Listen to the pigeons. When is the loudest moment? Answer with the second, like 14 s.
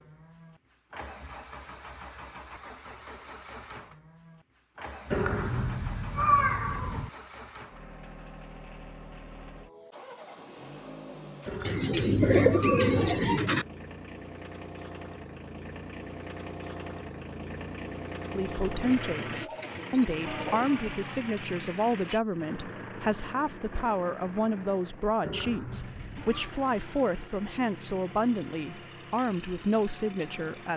12 s.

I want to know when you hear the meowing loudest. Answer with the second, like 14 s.
6 s.